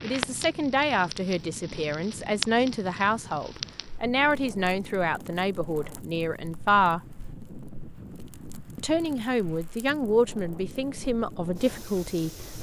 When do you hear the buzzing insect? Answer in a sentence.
The buzzing insect can't be heard in this clip.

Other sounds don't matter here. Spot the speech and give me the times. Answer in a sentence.
You can hear the speech from 0.0 to 7.0 s and from 8.8 to 12.3 s.